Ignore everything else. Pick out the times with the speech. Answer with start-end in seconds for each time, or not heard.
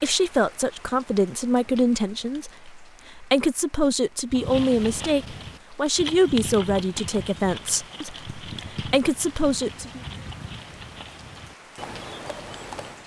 0.0-10.0.